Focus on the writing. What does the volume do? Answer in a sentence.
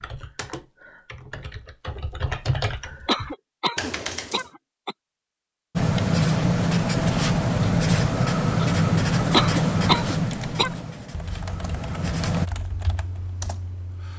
The volume of the writing goes down.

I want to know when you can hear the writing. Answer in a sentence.
The writing can be heard from 5.8 to 12.5 s.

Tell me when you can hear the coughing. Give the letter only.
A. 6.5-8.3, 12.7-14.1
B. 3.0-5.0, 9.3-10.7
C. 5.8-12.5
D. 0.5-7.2
B.